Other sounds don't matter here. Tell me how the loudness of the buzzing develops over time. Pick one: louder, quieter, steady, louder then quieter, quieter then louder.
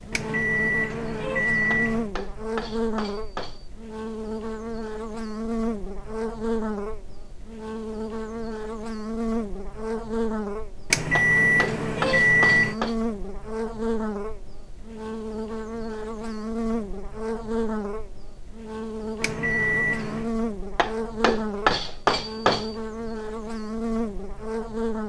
steady.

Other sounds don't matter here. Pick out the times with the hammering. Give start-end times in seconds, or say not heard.
1.7-3.7, 11.2-12.9, 20.8-22.8.